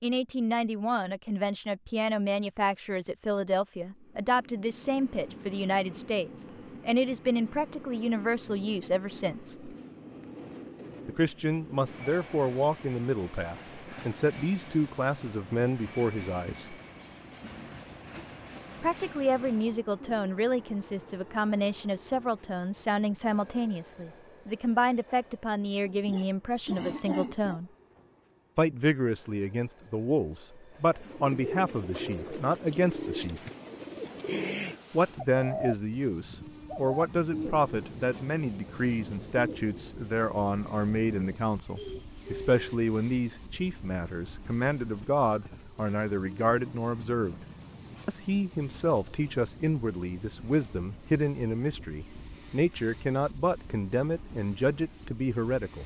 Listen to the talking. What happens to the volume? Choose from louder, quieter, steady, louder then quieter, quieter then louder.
steady.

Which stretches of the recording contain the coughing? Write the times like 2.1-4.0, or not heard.
25.9-27.6.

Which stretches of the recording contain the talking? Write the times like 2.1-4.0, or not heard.
0.0-9.8, 11.1-16.8, 18.8-27.7, 28.6-33.4, 34.9-47.5, 48.0-55.8.